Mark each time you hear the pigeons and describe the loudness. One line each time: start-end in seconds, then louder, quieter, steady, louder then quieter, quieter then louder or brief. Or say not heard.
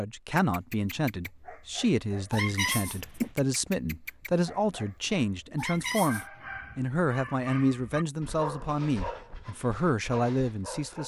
not heard.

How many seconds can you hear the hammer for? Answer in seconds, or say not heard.
not heard.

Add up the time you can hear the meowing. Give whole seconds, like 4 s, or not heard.
2 s.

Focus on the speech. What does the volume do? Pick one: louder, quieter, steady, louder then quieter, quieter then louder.
steady.